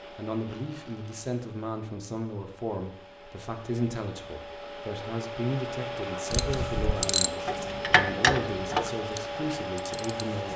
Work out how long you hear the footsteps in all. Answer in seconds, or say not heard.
not heard.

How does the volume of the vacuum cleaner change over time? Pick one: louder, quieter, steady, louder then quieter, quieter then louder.
louder.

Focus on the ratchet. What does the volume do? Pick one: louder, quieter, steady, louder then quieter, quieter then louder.
quieter.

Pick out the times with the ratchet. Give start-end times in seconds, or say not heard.
6.3-10.5.